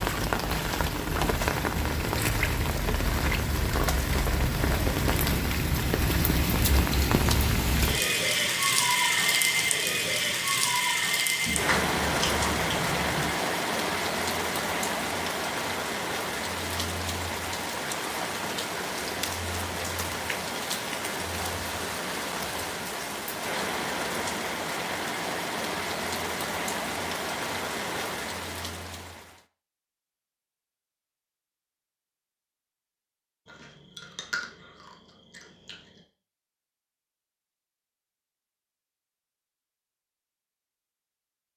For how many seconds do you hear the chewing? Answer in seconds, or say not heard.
4 s.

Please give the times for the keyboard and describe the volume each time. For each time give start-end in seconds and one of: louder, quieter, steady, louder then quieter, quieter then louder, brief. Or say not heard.
not heard.